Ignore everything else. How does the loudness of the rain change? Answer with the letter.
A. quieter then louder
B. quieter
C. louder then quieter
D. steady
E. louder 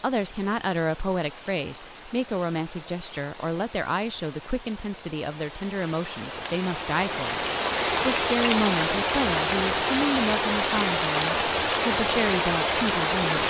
E.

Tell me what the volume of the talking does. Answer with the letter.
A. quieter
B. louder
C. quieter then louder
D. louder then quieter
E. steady
E.